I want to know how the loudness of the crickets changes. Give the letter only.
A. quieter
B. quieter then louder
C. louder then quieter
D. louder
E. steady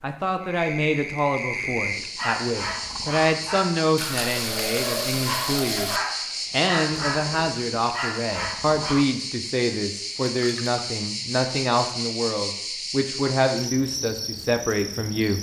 E.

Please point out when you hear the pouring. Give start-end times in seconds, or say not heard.
4.0-6.0, 10.3-10.8.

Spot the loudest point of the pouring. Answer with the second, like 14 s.
5 s.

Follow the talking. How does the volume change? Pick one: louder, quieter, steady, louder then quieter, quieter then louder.
steady.